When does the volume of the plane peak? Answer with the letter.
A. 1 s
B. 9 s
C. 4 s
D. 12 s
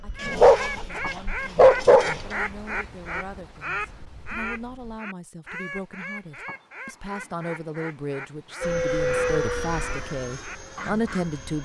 B.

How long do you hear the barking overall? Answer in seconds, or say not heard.
2 s.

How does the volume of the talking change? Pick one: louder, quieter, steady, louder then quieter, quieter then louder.
louder.